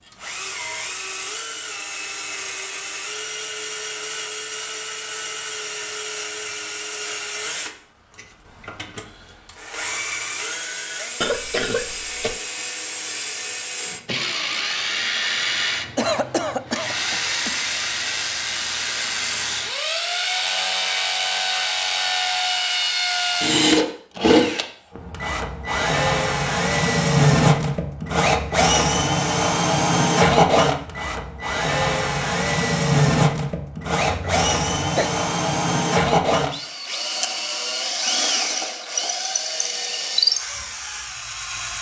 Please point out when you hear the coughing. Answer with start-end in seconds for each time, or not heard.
11.2-12.4, 15.9-17.6, 34.0-35.1.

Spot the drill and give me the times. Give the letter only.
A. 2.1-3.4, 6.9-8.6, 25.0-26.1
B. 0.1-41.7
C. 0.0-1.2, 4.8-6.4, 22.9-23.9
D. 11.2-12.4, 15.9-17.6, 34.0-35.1
B.